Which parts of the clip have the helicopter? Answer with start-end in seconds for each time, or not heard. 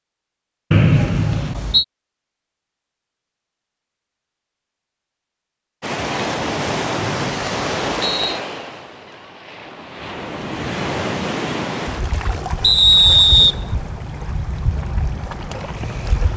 not heard.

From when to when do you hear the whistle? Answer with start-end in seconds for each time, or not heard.
0.7-1.9, 7.0-8.4, 12.6-13.6.